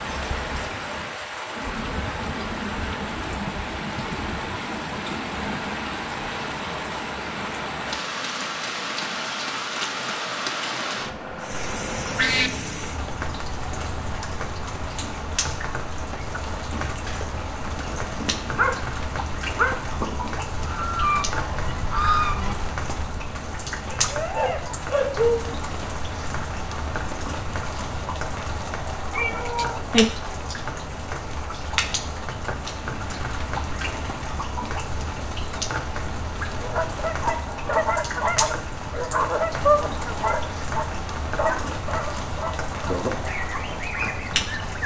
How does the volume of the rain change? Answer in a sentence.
The volume of the rain stays about the same.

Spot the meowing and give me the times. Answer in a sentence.
The meowing can be heard from 10.8 to 12.5 s and from 29.1 to 30.1 s.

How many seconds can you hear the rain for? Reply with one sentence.
The rain can be heard for 45 seconds in total.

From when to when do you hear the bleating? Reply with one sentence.
You can't hear the bleating here.